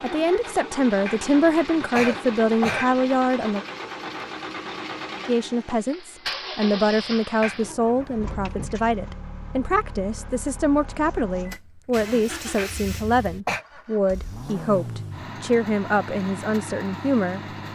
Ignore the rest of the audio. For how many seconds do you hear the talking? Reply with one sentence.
The talking can be heard for 16 seconds in total.